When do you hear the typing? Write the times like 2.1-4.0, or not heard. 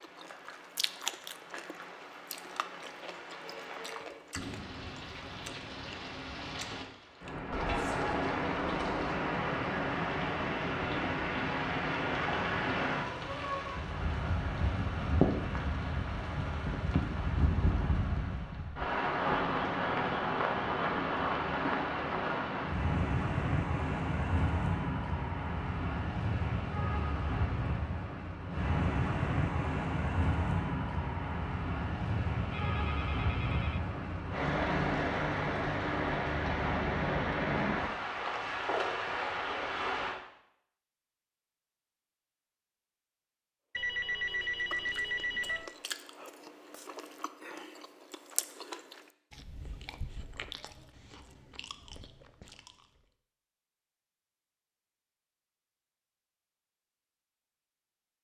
not heard.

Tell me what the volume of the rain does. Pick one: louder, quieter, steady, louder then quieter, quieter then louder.
louder.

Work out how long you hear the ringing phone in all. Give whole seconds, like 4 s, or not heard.
4 s.